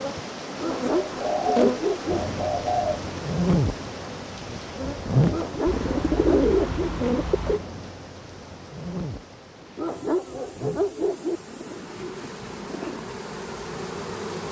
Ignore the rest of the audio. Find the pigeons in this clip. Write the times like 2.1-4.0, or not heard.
1.1-3.0, 5.7-7.6, 11.4-13.1.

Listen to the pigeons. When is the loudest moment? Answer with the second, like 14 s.
6 s.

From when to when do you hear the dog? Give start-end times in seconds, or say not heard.
0.6-2.2, 5.3-6.9, 9.8-11.4.